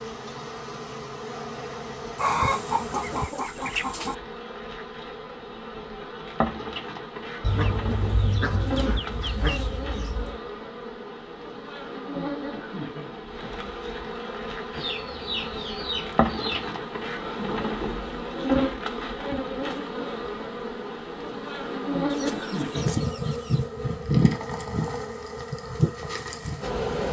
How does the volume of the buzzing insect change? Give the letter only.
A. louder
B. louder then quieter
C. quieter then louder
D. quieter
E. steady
A.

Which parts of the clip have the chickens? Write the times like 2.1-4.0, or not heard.
2.1-4.2, 7.4-10.4, 14.7-16.7, 22.1-23.6.